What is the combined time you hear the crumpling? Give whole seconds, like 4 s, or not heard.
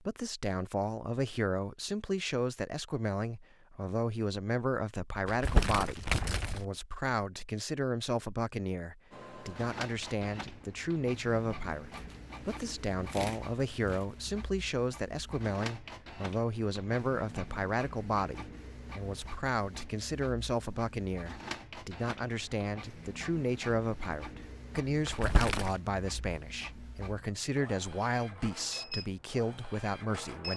4 s.